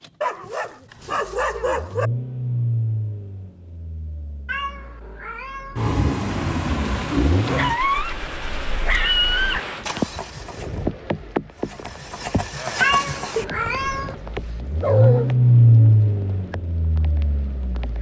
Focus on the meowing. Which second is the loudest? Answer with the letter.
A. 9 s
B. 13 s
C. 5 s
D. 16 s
B.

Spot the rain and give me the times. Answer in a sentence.
The rain can be heard from 6.8 to 17.9 s.